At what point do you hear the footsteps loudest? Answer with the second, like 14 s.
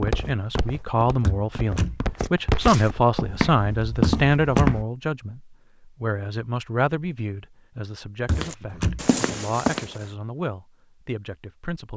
4 s.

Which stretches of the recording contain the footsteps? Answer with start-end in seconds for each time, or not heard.
0.0-4.8, 8.2-10.1.